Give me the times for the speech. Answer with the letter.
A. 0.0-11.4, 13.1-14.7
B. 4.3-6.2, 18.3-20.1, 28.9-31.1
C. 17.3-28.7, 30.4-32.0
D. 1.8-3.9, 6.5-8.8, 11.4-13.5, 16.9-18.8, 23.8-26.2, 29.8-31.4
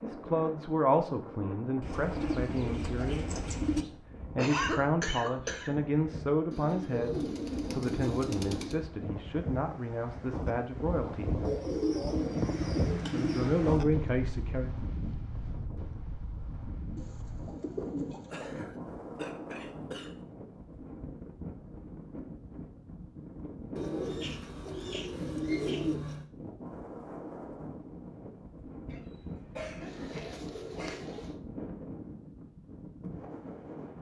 A.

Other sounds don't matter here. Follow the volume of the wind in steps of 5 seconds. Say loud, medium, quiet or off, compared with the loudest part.
medium, medium, loud, medium, medium, medium, medium.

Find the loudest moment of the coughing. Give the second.
5 s.